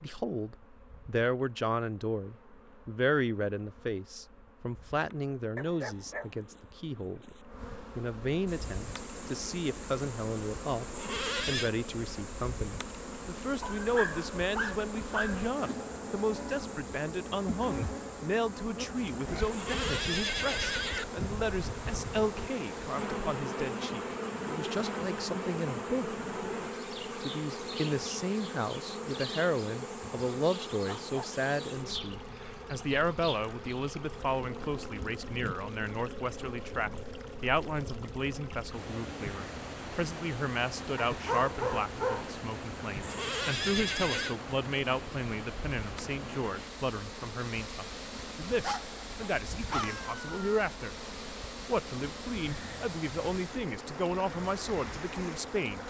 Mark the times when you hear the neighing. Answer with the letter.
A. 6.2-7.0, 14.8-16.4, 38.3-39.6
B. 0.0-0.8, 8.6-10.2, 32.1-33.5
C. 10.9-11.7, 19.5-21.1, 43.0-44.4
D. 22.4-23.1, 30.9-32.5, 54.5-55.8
C.